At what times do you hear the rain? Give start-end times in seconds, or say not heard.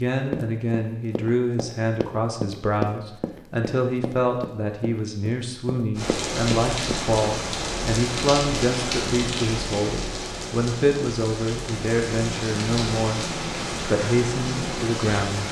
6.0-15.4.